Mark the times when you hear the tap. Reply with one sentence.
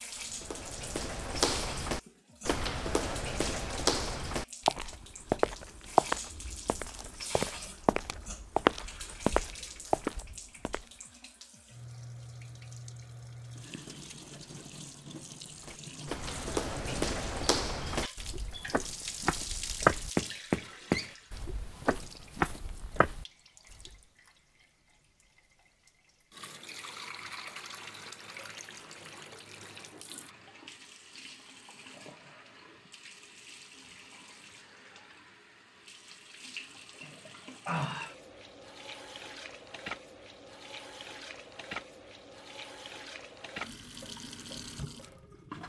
You can hear the tap from 0.0 to 45.6 s.